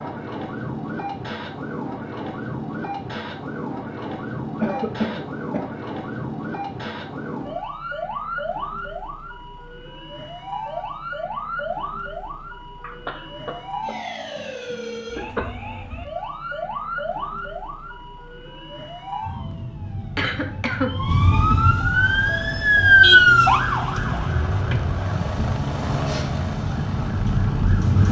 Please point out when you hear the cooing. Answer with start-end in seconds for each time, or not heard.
not heard.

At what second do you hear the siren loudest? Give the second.
23 s.